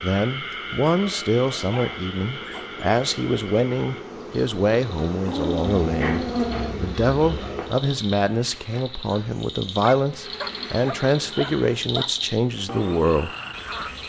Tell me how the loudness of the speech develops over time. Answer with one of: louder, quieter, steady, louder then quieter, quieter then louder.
steady.